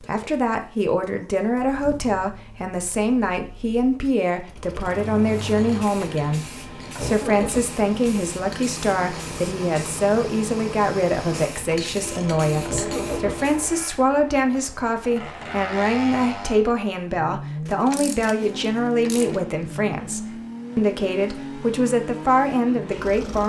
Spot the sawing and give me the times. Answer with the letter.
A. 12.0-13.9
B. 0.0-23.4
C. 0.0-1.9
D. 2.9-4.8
A.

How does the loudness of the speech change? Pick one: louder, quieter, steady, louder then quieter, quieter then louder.
steady.